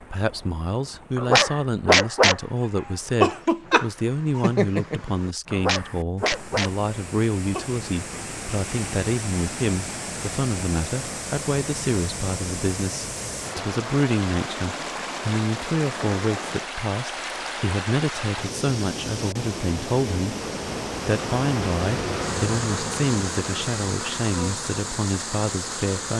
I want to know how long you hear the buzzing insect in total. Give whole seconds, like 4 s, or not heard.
6 s.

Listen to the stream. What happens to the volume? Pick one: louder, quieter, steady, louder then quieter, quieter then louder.
louder.